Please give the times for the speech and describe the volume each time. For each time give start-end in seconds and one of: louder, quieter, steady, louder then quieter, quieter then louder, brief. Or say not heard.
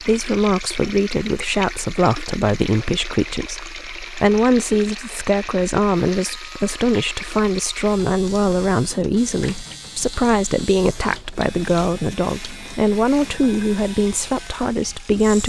0.0-15.4 steady.